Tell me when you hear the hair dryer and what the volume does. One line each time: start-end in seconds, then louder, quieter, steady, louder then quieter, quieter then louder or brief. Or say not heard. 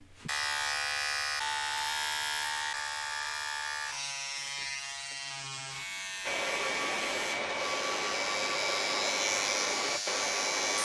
6.2-10.7 steady.